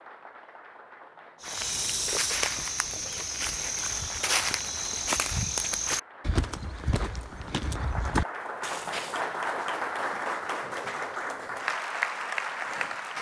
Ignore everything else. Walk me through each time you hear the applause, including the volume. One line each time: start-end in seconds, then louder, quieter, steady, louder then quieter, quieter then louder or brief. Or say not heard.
0.0-13.1 louder.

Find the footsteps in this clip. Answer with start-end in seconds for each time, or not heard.
1.4-9.2.